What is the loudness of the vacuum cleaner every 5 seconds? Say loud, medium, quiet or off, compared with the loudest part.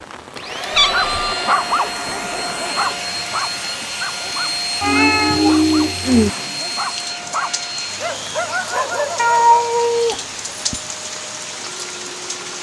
loud, loud, quiet.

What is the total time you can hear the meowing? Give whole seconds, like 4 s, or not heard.
4 s.